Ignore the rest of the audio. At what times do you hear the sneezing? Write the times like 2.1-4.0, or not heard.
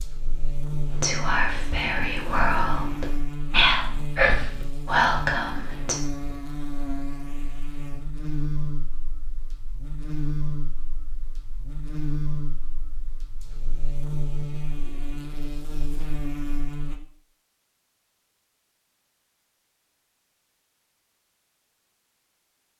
not heard.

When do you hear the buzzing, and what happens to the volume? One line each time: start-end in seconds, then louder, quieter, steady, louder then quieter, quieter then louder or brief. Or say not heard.
0.0-17.0 steady.